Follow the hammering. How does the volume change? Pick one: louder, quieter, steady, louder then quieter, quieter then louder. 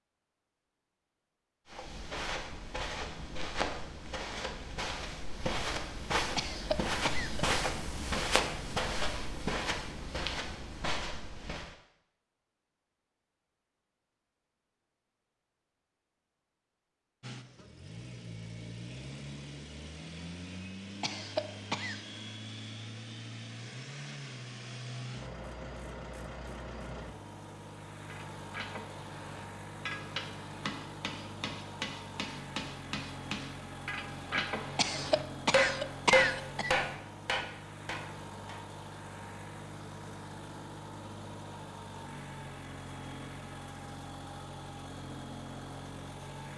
louder.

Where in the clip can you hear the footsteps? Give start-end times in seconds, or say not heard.
1.6-11.8.